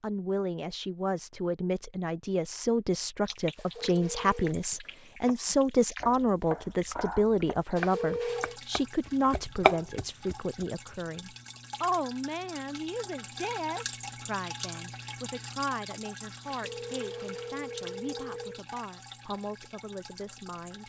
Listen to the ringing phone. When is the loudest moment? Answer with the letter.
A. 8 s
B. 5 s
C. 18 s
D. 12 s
A.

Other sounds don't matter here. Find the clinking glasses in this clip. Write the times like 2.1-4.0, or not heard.
not heard.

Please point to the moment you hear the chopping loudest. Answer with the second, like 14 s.
10 s.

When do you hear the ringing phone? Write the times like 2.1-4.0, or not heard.
3.5-4.5, 7.8-8.6, 16.4-18.6.